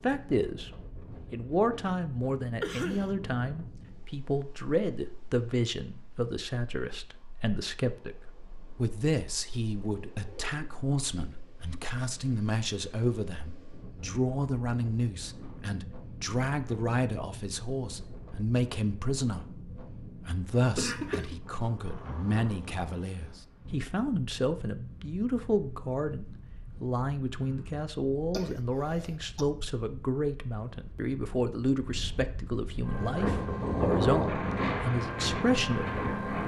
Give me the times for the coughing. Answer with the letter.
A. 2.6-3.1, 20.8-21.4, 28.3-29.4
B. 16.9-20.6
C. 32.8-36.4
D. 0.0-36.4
A.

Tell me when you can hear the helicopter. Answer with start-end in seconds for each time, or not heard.
32.8-36.4.